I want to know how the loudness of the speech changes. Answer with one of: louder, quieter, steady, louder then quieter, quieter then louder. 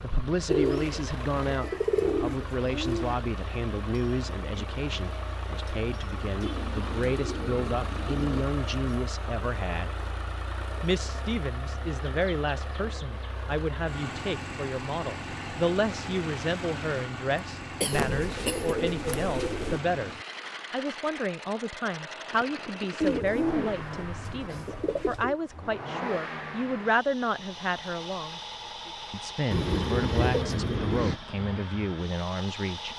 steady.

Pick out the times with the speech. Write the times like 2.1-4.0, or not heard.
0.0-9.9, 10.8-28.4, 29.1-32.9.